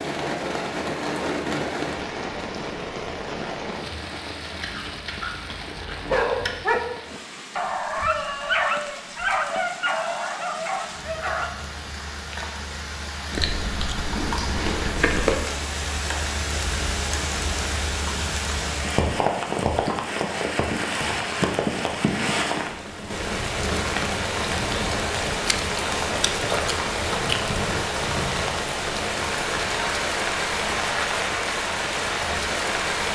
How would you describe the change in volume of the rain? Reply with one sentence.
The volume of the rain goes down, then up.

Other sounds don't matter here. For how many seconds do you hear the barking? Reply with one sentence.
You can hear the barking for 6 seconds altogether.